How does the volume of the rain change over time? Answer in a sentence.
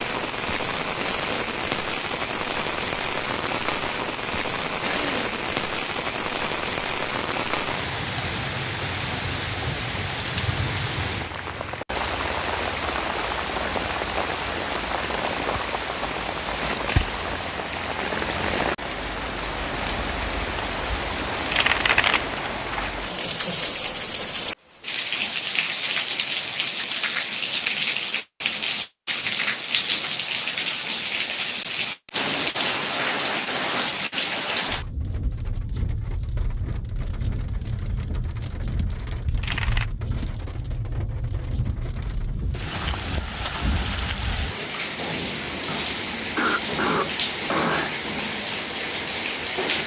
The loudness of the rain stays about the same.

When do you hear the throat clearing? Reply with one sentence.
The throat clearing can be heard from 4.8 to 5.2 s and from 46.4 to 48.0 s.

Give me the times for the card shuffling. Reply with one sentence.
You can hear the card shuffling from 21.4 to 23.1 s and from 39.2 to 39.9 s.